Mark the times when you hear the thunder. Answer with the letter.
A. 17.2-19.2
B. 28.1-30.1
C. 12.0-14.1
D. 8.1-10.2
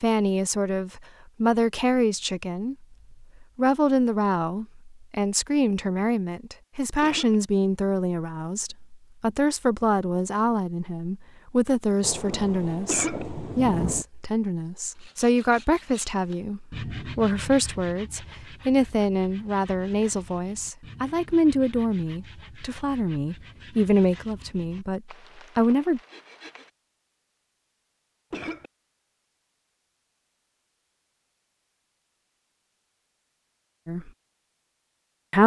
C.